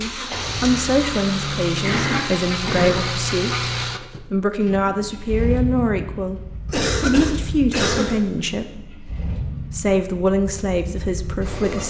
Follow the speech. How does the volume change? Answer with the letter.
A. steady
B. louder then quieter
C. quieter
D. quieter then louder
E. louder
A.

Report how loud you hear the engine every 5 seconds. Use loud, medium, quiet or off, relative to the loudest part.
loud, medium, medium.